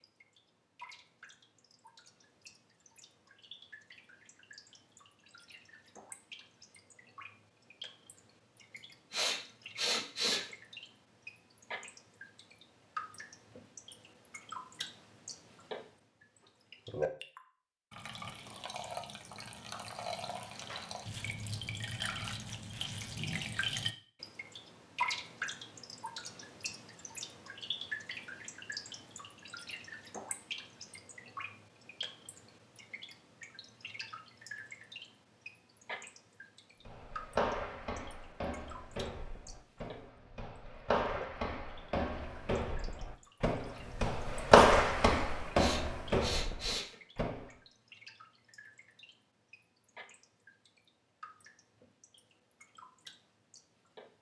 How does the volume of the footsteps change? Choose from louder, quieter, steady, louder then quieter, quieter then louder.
louder then quieter.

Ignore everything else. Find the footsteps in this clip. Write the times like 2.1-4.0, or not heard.
36.9-47.5.